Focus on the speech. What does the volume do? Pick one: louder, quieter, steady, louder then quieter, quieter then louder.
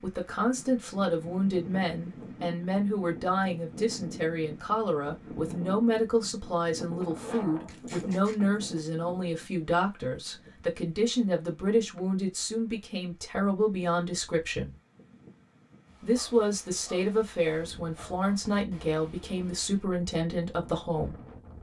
steady.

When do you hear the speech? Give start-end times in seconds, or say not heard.
0.0-14.8, 16.0-21.2.